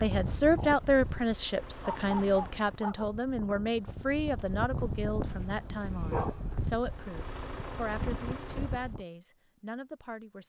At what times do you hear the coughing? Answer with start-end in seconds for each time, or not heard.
not heard.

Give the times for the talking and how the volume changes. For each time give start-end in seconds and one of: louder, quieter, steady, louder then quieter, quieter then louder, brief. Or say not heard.
0.0-10.4 quieter.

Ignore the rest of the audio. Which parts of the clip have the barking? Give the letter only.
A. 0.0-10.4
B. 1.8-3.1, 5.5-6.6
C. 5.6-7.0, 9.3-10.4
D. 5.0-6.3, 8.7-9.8
B.